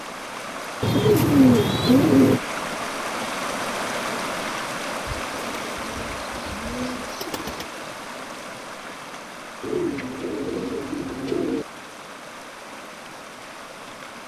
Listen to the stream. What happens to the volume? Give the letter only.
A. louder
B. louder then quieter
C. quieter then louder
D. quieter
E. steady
D.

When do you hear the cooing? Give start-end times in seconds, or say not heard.
0.8-2.4, 5.0-7.7, 9.6-11.7.